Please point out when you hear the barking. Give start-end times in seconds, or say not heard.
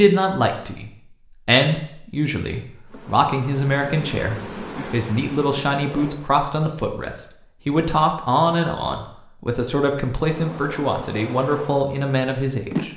not heard.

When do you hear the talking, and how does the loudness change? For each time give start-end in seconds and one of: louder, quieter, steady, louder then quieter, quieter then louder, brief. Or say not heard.
0.0-12.9 steady.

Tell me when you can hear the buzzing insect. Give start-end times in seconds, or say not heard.
2.9-6.3, 10.2-12.9.